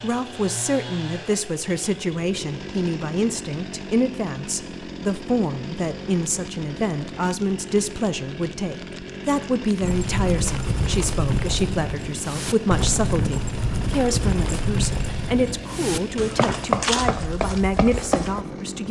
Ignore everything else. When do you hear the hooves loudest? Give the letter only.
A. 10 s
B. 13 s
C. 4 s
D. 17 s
D.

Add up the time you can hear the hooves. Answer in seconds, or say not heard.
9 s.